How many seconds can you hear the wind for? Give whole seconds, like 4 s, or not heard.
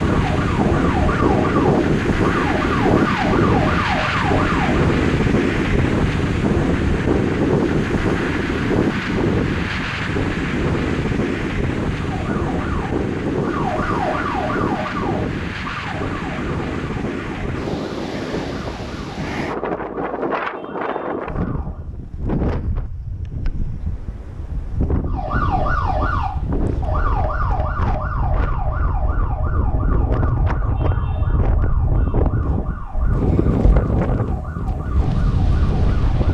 36 s.